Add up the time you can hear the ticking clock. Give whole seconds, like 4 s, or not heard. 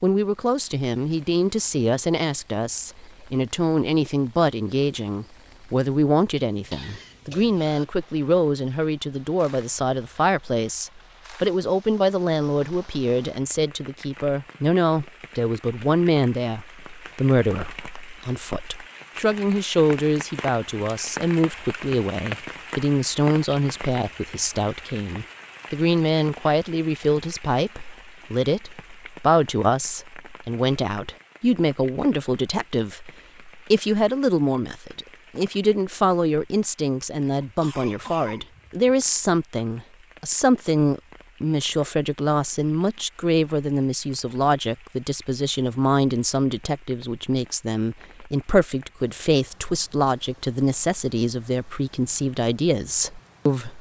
not heard.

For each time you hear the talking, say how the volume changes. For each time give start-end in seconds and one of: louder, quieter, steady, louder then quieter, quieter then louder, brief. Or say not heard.
0.0-53.7 steady.